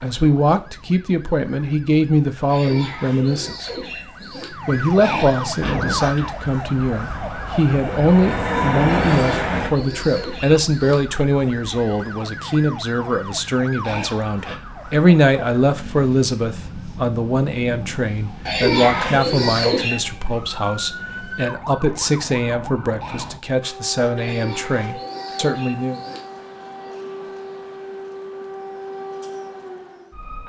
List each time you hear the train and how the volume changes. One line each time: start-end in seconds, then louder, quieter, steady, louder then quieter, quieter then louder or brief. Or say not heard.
5.6-9.7 louder.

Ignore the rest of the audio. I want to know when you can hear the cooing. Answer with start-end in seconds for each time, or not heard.
2.5-4.5, 9.0-11.0, 18.4-20.0, 24.2-26.2.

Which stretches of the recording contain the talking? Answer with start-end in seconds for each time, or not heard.
0.0-3.7, 4.5-26.0.